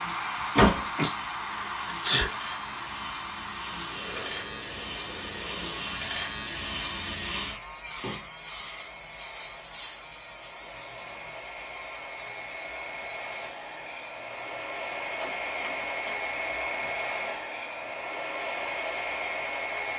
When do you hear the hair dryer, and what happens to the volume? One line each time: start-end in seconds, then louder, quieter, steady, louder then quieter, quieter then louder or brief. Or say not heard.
0.0-19.9 quieter then louder.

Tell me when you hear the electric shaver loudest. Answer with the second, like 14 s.
7 s.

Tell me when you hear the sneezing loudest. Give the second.
2 s.